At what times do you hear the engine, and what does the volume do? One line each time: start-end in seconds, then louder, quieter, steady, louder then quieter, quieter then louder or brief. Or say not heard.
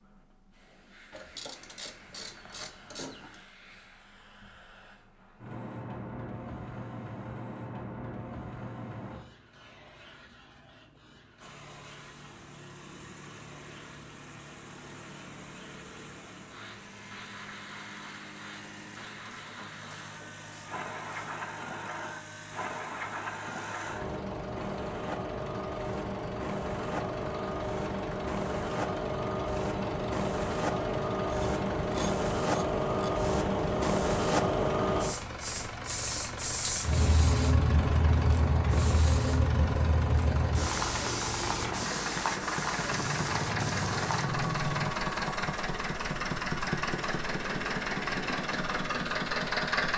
11.4-49.9 louder.